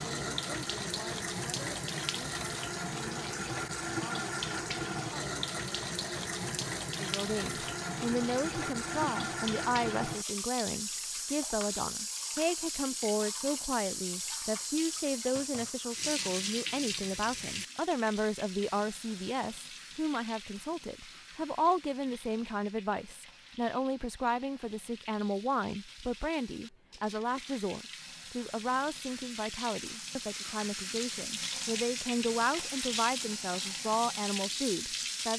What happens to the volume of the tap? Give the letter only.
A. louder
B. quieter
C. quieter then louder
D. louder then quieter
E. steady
C.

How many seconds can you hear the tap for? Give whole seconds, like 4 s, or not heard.
35 s.